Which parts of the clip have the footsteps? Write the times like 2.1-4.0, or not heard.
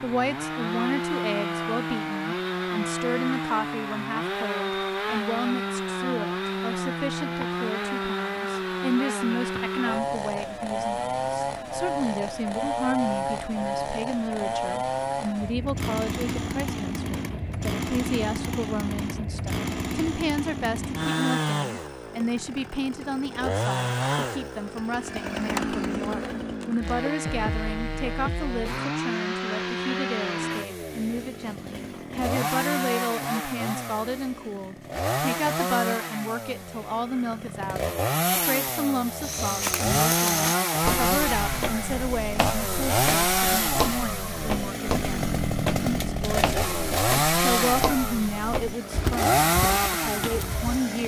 39.2-50.8.